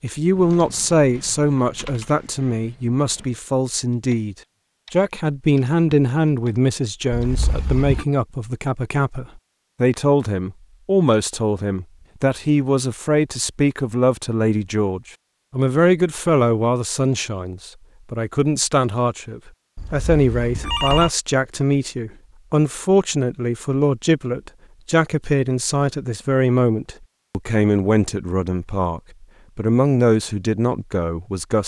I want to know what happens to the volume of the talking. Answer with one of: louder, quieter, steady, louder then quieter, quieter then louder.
steady.